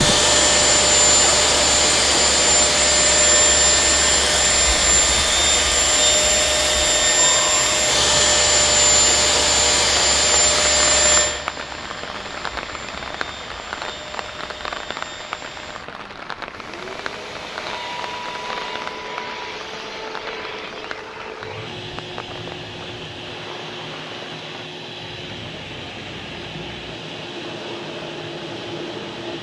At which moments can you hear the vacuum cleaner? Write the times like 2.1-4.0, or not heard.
0.0-29.3.